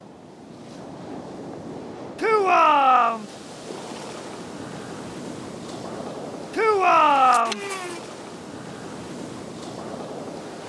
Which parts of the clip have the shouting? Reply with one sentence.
You can hear the shouting from 2.1 to 3.2 s and from 6.5 to 7.6 s.